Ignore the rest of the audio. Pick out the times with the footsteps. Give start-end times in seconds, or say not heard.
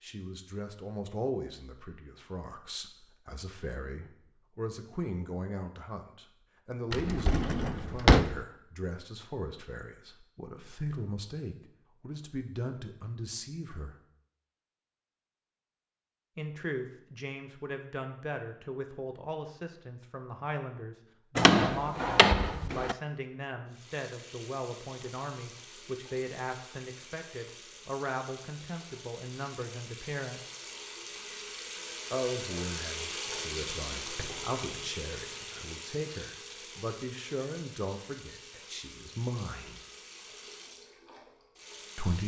not heard.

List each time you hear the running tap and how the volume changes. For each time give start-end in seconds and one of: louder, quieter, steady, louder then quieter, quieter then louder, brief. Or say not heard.
23.6-42.2 louder then quieter.